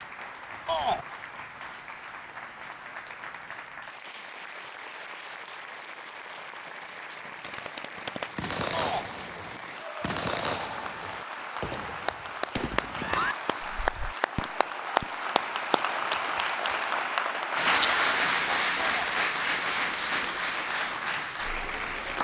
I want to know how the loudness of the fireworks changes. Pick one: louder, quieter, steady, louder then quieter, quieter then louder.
quieter.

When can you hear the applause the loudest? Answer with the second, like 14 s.
18 s.